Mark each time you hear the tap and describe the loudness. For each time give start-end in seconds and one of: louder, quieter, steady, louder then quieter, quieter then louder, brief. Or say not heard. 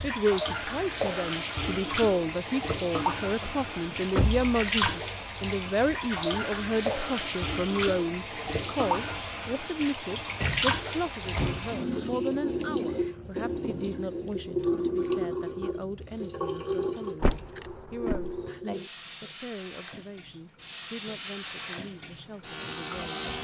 0.0-23.3 quieter.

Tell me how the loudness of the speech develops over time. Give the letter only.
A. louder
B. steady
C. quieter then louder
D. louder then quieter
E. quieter
E.